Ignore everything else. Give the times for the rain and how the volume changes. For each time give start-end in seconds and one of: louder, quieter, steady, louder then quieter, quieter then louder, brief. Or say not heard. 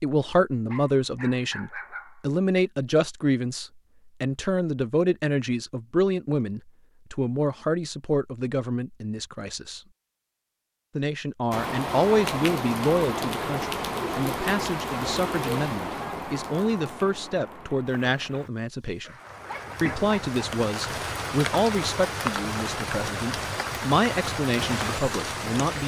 11.5-25.8 quieter then louder.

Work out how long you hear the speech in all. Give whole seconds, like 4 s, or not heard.
24 s.